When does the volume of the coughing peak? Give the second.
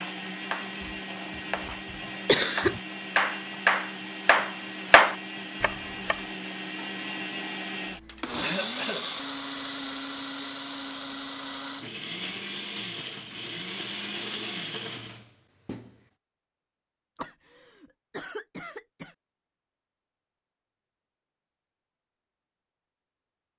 2 s.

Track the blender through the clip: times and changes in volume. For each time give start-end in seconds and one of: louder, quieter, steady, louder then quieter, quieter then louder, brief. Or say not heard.
0.0-16.0 steady.